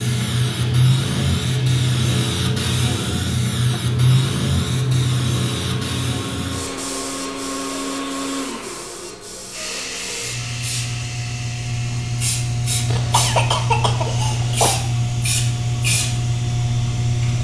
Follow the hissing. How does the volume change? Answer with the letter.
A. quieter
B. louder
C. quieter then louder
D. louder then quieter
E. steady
C.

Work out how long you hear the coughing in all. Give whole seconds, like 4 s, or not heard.
2 s.